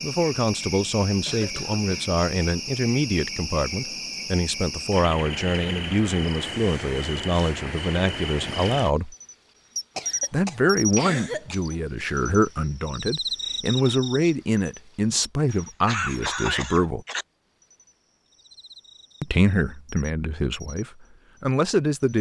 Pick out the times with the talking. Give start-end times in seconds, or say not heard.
0.0-9.2, 10.3-17.1, 19.2-22.1.